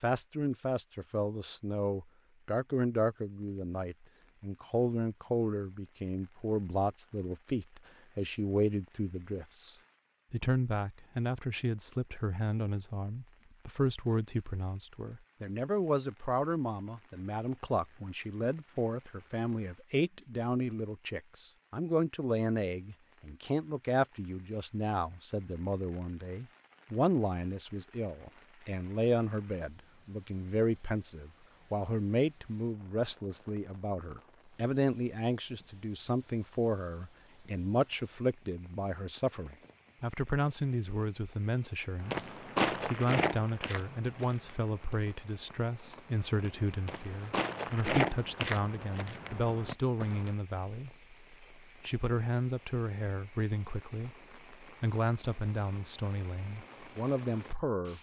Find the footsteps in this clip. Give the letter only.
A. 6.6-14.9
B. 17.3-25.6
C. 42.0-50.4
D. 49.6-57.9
C.